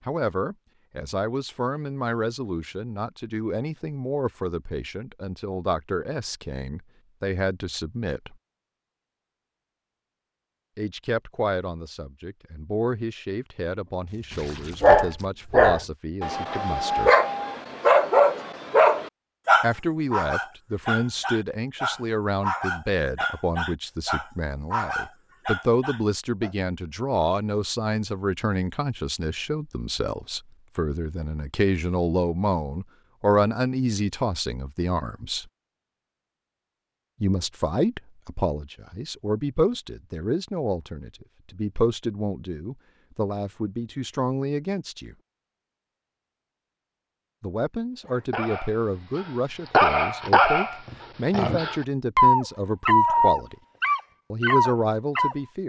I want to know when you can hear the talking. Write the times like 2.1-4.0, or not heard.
0.1-8.3, 10.8-17.1, 19.6-35.5, 37.2-45.1, 47.4-53.5, 54.3-55.6.